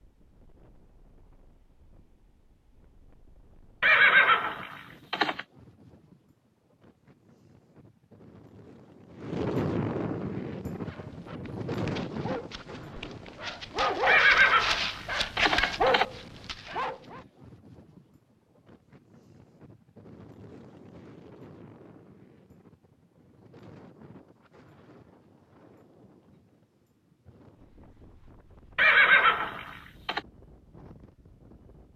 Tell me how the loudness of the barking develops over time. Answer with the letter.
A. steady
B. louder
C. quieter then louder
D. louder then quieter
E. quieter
B.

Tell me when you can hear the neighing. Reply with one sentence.
You can hear the neighing from 3.8 to 5.4 s, from 14.1 to 16.1 s and from 28.8 to 30.2 s.